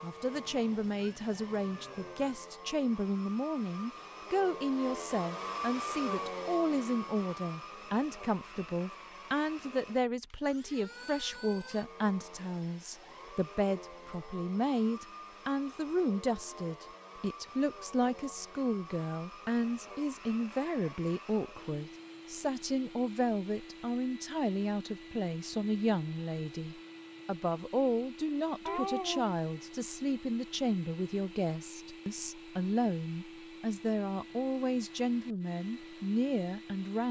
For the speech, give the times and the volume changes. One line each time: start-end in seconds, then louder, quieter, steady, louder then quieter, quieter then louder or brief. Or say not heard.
0.0-37.0 steady.